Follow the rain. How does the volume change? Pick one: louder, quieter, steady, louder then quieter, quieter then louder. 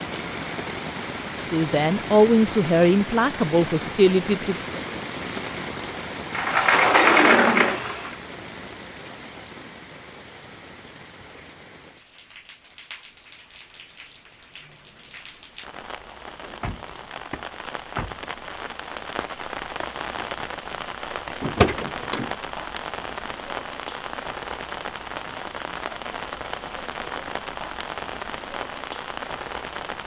quieter then louder.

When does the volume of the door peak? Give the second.
7 s.